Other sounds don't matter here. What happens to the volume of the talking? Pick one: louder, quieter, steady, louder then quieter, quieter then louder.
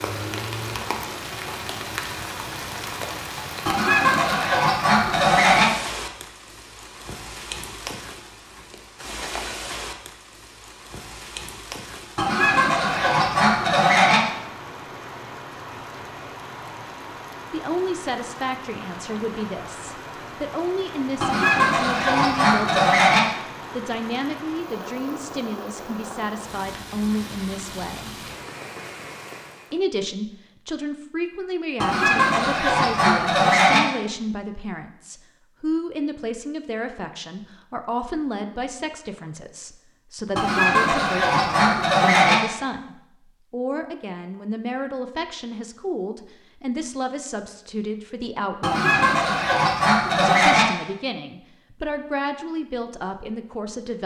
steady.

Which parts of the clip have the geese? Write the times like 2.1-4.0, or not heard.
3.6-5.7, 12.2-14.2, 21.2-23.2, 31.8-33.8, 40.4-42.4, 48.6-50.6.